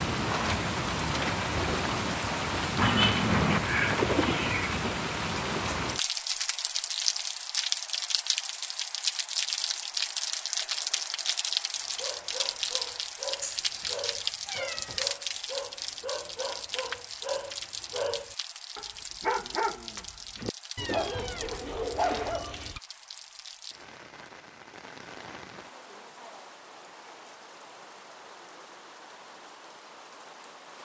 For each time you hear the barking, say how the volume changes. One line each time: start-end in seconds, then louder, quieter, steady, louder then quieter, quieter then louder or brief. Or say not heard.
11.8-22.8 louder.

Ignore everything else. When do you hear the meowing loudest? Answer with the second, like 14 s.
3 s.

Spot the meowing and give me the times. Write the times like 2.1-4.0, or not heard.
2.8-4.8, 13.4-15.1, 20.8-22.8.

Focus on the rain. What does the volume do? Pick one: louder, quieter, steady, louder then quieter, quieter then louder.
quieter.